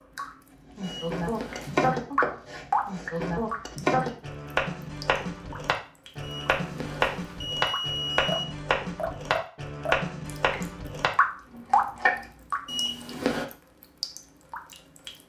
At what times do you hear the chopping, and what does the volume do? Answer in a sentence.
The chopping can be heard from 0.8 to 12.2 s, at a steady volume.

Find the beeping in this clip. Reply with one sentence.
You can hear the beeping from 0.8 to 1.9 s, from 6.2 to 8.4 s and from 12.7 to 13.4 s.